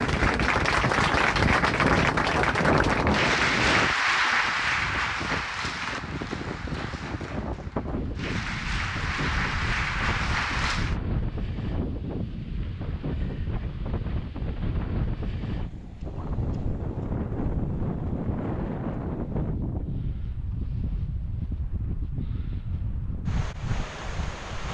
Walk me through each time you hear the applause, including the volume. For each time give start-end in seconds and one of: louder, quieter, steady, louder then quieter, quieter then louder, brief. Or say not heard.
0.0-10.9 quieter then louder.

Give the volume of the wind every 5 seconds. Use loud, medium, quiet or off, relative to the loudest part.
loud, medium, medium, loud, medium.